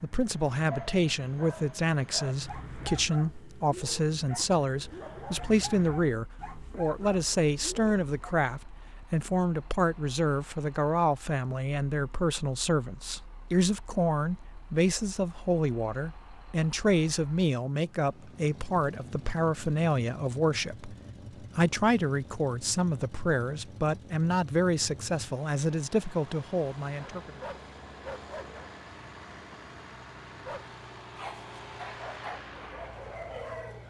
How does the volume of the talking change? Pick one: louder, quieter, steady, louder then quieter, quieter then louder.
steady.